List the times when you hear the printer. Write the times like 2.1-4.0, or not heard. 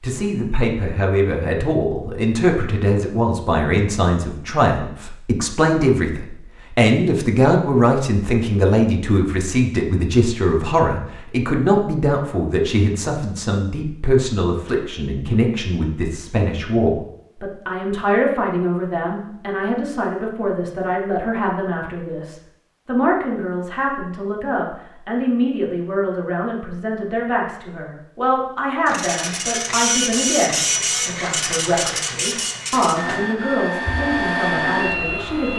28.9-35.5.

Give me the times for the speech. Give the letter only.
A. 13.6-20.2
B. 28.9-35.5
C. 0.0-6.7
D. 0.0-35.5
D.